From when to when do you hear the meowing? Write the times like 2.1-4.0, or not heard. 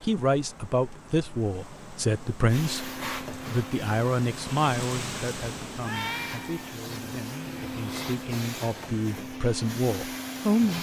5.8-6.7.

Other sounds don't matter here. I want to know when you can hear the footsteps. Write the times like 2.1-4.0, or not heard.
not heard.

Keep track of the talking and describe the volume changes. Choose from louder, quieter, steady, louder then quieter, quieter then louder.
quieter then louder.